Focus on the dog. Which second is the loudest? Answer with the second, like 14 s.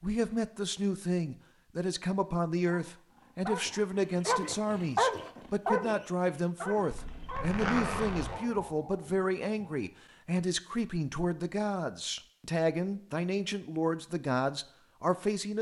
5 s.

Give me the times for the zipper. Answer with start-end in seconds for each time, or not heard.
6.9-8.4.